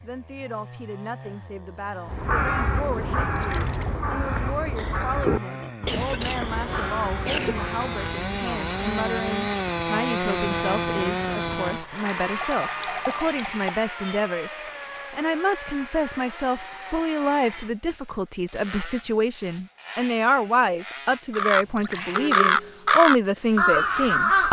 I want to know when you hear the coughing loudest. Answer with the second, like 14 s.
7 s.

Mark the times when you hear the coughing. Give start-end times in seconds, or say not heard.
5.8-7.5.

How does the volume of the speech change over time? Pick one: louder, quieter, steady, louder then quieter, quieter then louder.
louder.